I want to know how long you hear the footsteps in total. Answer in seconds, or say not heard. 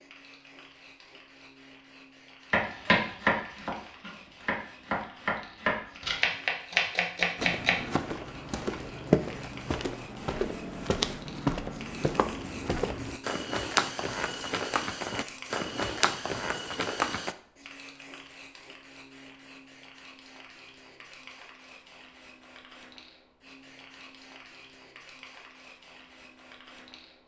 10 s.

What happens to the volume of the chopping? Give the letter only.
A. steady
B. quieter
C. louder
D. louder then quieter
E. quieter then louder
E.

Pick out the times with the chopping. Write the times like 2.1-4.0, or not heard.
2.5-7.8.